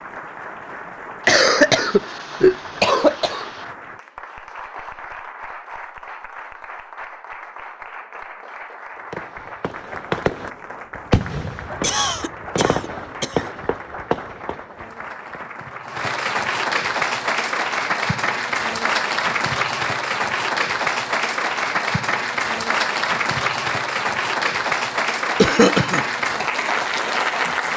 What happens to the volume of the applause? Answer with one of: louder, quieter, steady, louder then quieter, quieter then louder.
louder.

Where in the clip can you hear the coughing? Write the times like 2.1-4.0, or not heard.
1.2-3.5, 11.8-13.4, 25.4-26.1.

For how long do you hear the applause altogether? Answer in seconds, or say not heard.
28 s.